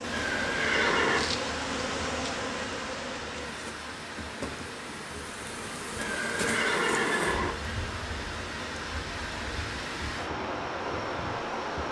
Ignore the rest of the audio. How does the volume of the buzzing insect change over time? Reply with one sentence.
The loudness of the buzzing insect goes down.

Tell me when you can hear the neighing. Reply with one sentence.
You can hear the neighing from 0.1 to 1.3 s and from 6.0 to 7.5 s.